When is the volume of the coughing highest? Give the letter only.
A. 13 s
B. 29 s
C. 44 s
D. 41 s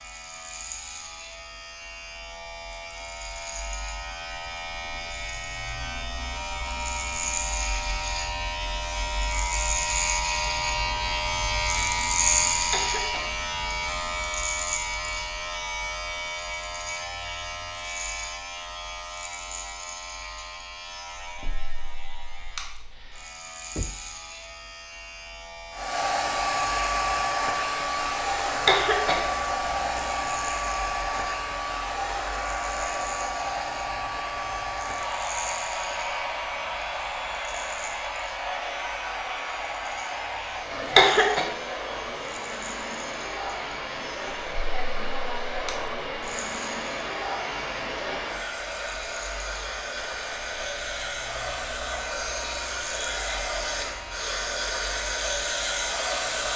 D.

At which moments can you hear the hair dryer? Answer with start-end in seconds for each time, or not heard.
25.7-56.5.